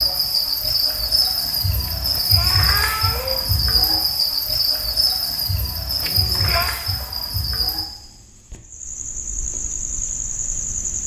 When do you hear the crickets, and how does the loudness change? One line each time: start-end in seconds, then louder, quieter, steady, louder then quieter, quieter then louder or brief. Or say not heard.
0.0-11.0 quieter.